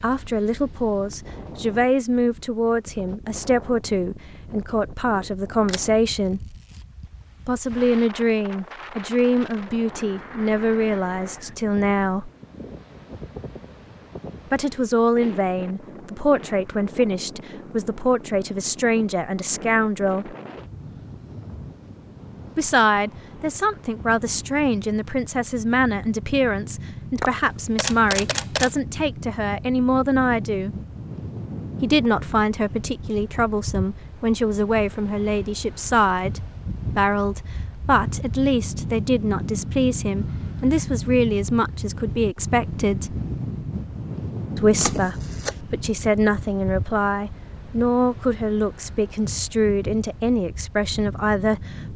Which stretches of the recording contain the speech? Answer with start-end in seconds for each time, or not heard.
0.0-6.5, 7.5-12.3, 14.5-20.4, 22.6-30.8, 31.8-43.1, 44.5-51.9.